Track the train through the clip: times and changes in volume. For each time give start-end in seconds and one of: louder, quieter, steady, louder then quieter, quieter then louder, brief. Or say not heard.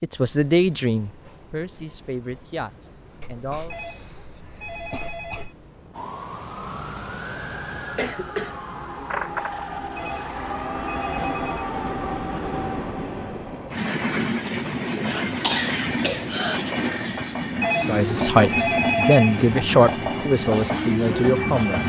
0.0-21.8 louder.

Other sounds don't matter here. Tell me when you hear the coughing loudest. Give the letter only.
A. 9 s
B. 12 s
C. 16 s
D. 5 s
C.